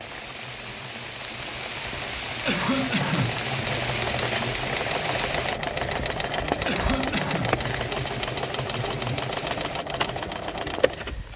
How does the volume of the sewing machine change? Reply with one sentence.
The volume of the sewing machine goes up.